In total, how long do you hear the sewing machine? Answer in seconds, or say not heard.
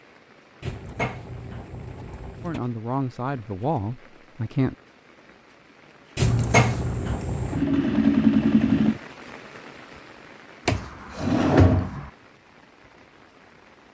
3 s.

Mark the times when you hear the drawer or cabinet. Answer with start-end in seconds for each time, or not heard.
0.6-2.6, 6.2-7.6, 10.7-12.1.